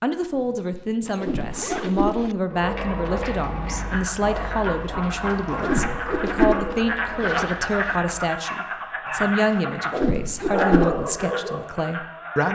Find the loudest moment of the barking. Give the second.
11 s.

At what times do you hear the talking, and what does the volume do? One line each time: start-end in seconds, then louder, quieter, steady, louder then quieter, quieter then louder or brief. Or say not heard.
0.0-12.5 steady.